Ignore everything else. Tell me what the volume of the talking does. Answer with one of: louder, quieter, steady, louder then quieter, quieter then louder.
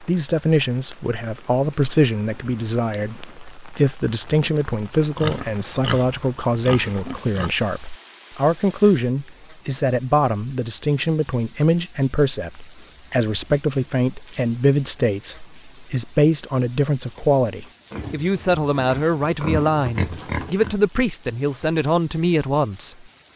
steady.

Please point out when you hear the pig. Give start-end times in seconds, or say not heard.
5.2-7.5, 17.9-20.8.